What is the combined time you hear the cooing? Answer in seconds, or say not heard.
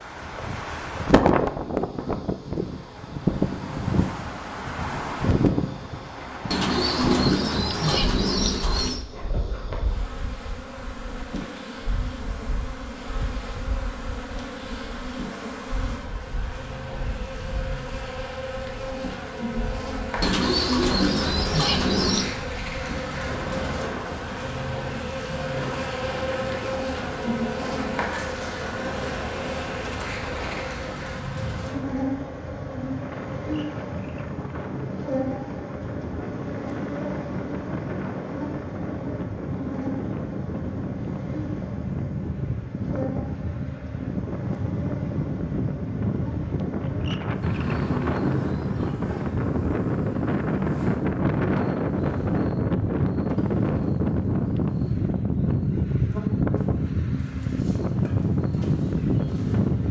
6 s.